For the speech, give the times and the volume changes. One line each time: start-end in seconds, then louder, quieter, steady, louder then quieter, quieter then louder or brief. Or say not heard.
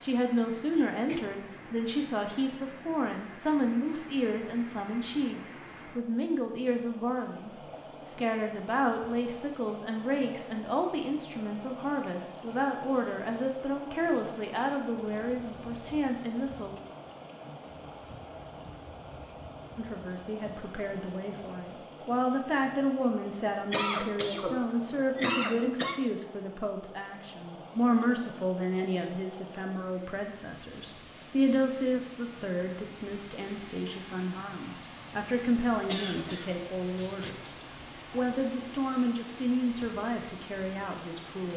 0.0-16.8 steady
19.8-41.5 steady.